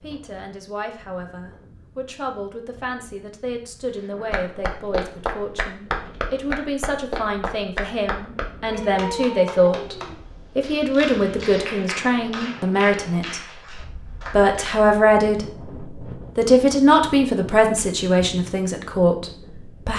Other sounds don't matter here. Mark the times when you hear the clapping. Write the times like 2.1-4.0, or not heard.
4.3-14.8.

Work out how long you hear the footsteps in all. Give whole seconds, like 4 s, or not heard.
not heard.